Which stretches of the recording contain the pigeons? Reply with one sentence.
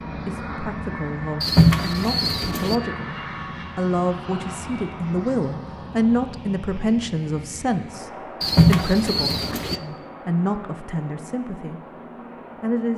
You can hear the pigeons from 1.4 to 2.8 s and from 8.4 to 9.8 s.